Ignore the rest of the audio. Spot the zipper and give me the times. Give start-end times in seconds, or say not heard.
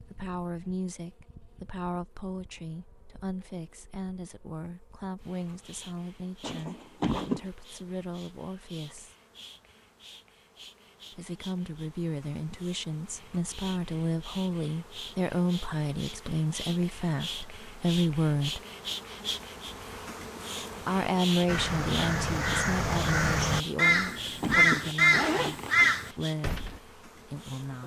6.4-7.5, 23.8-25.9.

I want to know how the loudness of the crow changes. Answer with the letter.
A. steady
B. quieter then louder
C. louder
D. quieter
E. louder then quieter
C.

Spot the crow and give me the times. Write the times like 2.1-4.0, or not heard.
21.4-26.8.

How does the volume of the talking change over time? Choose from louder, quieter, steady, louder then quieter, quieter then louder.
louder then quieter.